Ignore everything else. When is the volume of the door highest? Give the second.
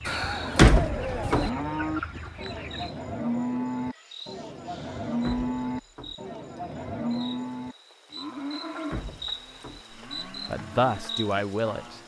1 s.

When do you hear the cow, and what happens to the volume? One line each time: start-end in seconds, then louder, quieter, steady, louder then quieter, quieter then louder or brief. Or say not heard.
0.1-12.0 quieter.